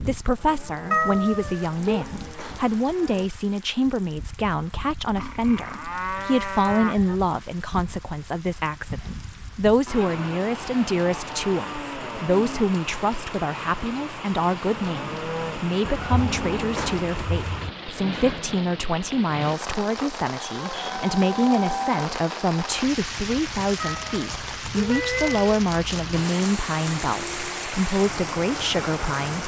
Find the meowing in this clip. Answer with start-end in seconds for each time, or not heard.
0.9-2.0, 15.8-17.7, 23.8-25.6.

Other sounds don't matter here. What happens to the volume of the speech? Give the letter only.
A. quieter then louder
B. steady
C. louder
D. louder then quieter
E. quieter
B.